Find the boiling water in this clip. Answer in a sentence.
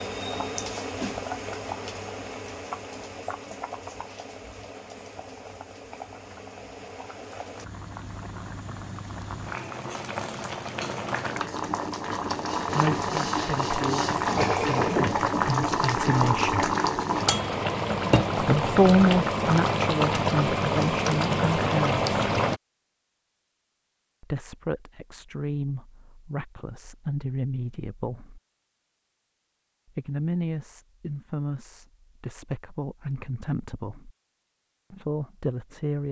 You can hear the boiling water from 0.0 to 22.6 s.